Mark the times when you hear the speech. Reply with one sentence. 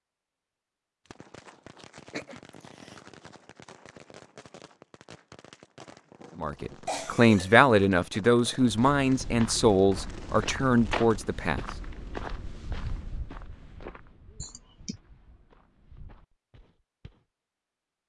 You can hear the speech from 6.3 to 11.7 s.